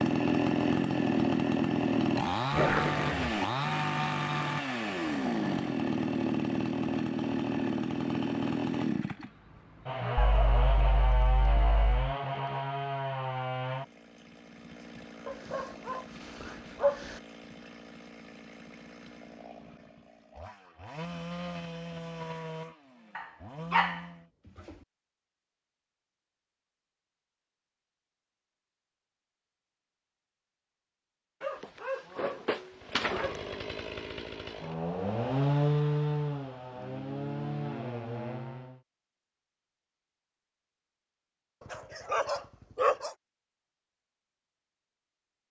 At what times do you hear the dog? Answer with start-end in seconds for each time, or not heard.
2.5-3.4, 10.2-12.0, 15.2-17.2, 23.1-24.0, 31.4-33.4, 41.7-43.1.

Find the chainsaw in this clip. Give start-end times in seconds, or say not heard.
0.0-24.3, 32.7-38.8.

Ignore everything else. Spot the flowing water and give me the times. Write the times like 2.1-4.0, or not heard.
not heard.